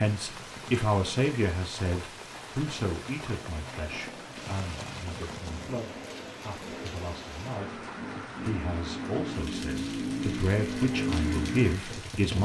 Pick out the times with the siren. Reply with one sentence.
The siren can't be heard in this clip.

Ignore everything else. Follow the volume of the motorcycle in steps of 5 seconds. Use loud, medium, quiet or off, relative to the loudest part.
quiet, medium, loud.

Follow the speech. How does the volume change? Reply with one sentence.
The loudness of the speech goes down, then up.